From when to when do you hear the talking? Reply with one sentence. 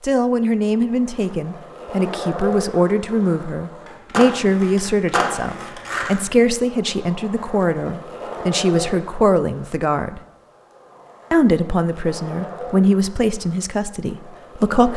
The talking can be heard from 0.0 to 10.2 s and from 11.3 to 14.9 s.